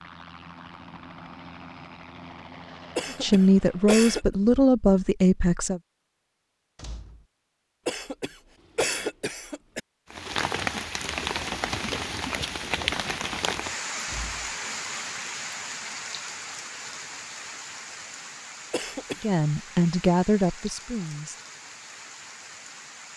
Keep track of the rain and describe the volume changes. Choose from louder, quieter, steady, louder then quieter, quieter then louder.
quieter.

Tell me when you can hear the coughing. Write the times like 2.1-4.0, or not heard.
3.0-4.2, 7.8-9.8, 18.7-19.2.